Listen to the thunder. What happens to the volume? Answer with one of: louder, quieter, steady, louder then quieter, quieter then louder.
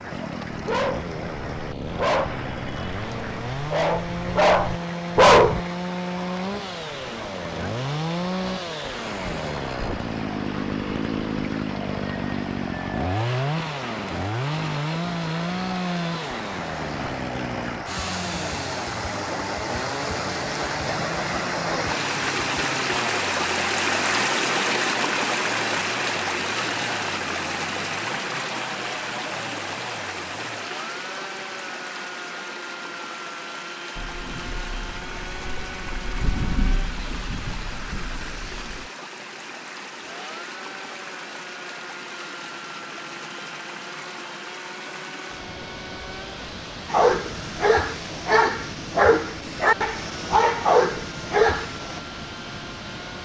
louder then quieter.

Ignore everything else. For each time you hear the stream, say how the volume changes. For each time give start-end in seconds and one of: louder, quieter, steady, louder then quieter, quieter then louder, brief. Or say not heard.
0.0-53.2 louder then quieter.